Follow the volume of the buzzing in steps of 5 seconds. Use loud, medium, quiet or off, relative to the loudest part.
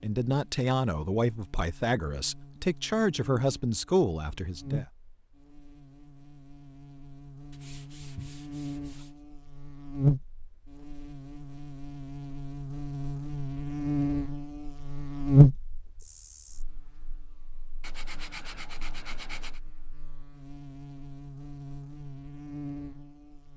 quiet, quiet, medium, loud, quiet.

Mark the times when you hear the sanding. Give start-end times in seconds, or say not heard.
7.5-9.2, 17.8-19.6.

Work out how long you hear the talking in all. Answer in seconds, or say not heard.
5 s.